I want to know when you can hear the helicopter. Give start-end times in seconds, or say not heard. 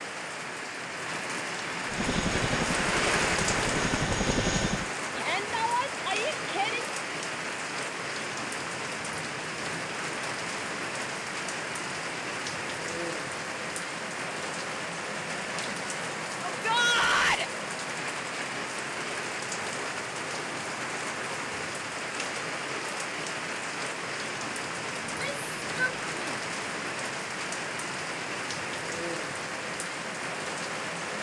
1.9-4.9.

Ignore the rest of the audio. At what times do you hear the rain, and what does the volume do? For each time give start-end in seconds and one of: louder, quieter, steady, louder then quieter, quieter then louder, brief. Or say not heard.
0.0-31.1 steady.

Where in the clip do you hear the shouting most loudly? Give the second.
17 s.